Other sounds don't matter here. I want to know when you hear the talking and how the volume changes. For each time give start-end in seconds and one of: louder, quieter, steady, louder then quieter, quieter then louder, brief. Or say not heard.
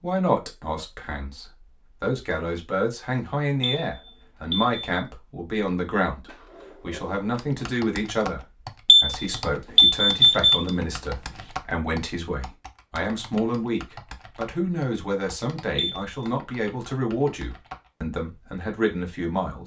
0.0-19.6 steady.